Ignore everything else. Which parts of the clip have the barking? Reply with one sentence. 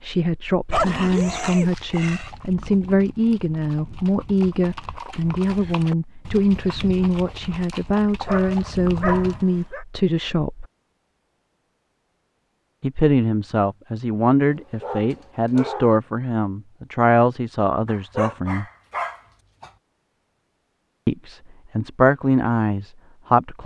You can hear the barking from 0.7 to 2.3 s, from 8.2 to 9.8 s, from 14.4 to 16.0 s and from 17.9 to 19.7 s.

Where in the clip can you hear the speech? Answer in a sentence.
You can hear the speech from 0.0 to 10.7 s, from 12.8 to 18.6 s and from 21.1 to 23.6 s.